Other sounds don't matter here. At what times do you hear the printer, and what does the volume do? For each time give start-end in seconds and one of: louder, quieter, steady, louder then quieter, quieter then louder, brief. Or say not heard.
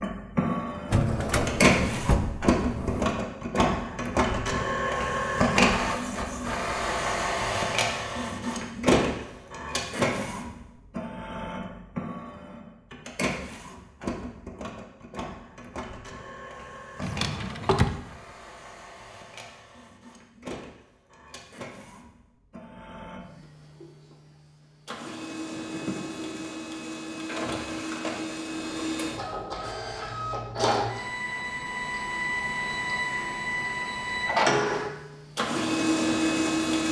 0.0-36.8 quieter then louder.